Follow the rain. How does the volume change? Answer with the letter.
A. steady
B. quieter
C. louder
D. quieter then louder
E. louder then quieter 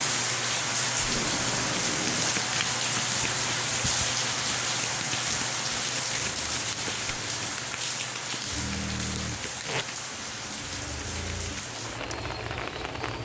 B.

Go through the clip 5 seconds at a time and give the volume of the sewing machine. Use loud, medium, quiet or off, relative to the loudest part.
off, loud, loud.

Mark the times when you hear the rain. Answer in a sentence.
You can hear the rain from 0.0 to 13.2 s.